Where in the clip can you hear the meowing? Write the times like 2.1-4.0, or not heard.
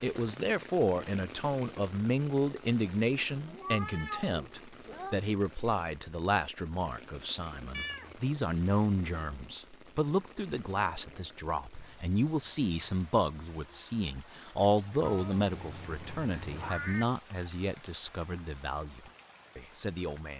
3.5-5.2, 7.7-8.2, 15.0-17.1.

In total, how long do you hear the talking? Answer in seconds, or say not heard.
20 s.